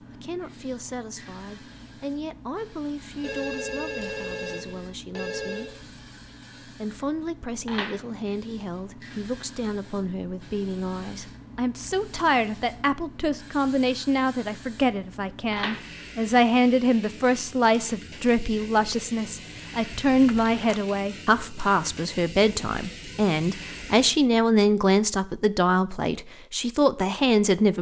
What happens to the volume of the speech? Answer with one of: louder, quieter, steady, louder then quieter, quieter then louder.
louder.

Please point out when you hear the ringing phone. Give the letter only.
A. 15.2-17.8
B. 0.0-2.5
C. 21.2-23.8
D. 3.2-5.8
D.